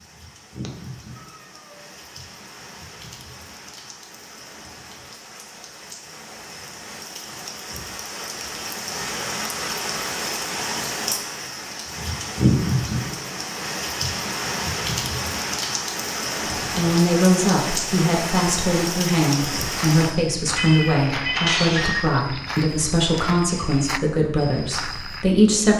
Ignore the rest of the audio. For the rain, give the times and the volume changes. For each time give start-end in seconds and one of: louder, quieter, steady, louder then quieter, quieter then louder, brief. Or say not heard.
0.0-20.1 louder.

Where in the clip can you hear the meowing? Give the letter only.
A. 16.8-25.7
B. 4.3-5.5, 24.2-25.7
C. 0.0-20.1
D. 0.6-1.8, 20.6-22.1
D.